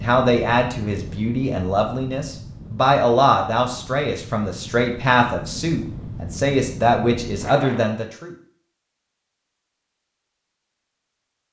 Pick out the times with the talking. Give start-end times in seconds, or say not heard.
0.0-8.3.